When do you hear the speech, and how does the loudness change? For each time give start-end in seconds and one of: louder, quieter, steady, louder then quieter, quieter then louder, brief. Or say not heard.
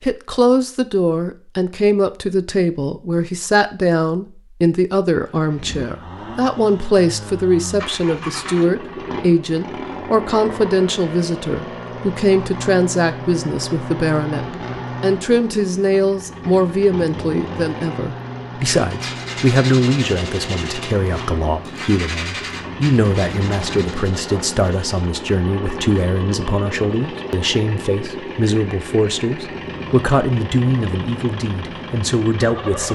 0.0-32.8 steady.